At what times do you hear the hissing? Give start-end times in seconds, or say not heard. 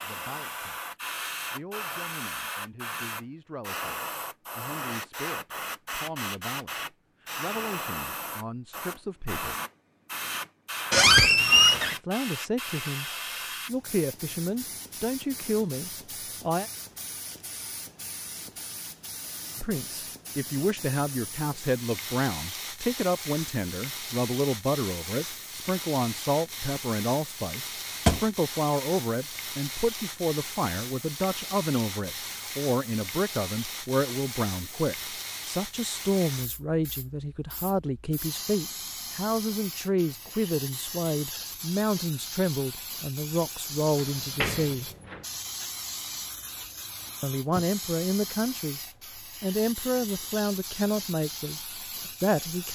0.0-52.7.